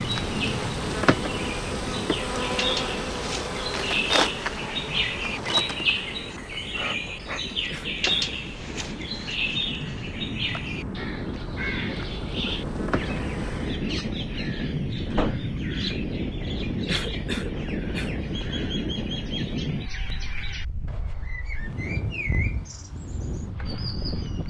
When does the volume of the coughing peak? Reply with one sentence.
The volume of the coughing peaks at 17 seconds.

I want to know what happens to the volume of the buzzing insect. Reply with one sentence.
The volume of the buzzing insect goes down, then up.